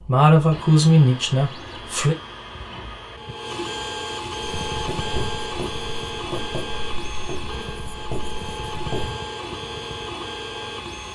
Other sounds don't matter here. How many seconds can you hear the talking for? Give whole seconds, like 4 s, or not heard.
2 s.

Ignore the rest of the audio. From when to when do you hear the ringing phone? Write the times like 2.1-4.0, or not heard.
not heard.